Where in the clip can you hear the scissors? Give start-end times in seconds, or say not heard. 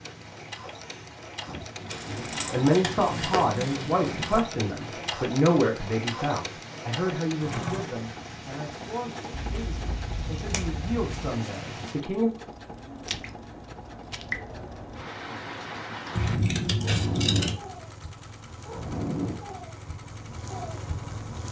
1.9-4.5, 9.3-11.3, 16.1-17.6.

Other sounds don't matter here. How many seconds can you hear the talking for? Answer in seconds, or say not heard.
10 s.